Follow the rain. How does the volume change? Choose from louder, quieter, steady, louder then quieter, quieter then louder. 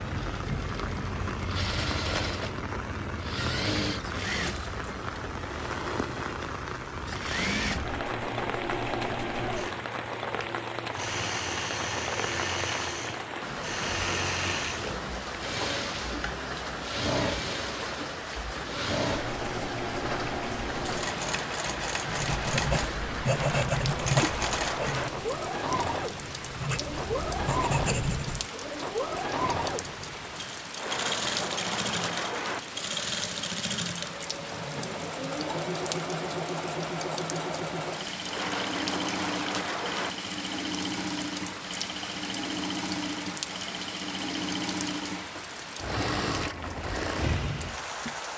steady.